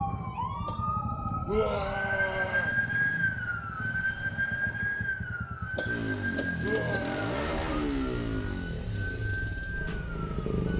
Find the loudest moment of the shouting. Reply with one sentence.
The loudest moment of the shouting is at 2 seconds.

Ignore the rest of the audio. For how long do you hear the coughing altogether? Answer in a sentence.
The coughing can be heard for 2 seconds in total.